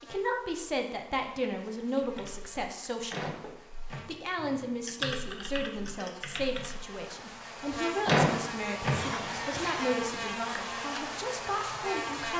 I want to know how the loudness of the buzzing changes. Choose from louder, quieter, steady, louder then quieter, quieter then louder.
louder.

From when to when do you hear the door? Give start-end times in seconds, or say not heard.
3.1-4.3, 8.1-9.3.